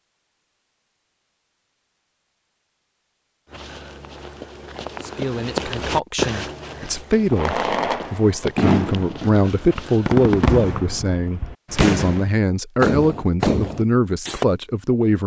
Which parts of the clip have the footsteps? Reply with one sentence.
You can hear the footsteps from 3.5 to 10.5 s.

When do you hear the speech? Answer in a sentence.
You can hear the speech from 5.0 to 15.2 s.